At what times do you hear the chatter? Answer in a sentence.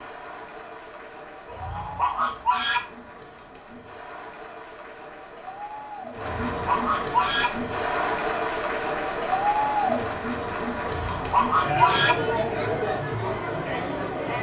You can hear the chatter from 0.0 to 14.3 s.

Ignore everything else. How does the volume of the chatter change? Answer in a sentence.
The loudness of the chatter goes up.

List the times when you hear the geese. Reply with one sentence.
You can hear the geese from 1.5 to 2.8 s, from 6.3 to 7.5 s and from 10.8 to 12.2 s.